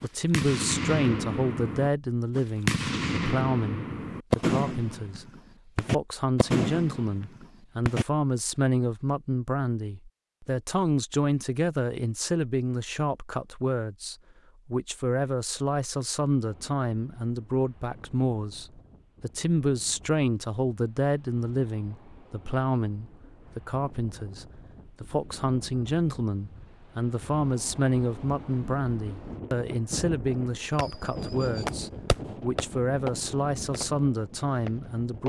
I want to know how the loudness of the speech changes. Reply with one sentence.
The volume of the speech stays about the same.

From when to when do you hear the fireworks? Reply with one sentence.
You can hear the fireworks from 0.0 to 8.1 s and from 30.8 to 35.2 s.